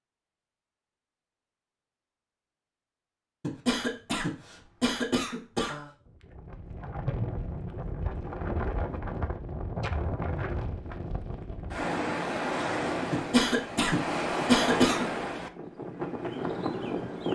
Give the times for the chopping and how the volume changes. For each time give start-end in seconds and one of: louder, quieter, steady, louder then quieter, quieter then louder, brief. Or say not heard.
not heard.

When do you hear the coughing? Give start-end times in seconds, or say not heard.
3.4-5.8, 13.1-15.1.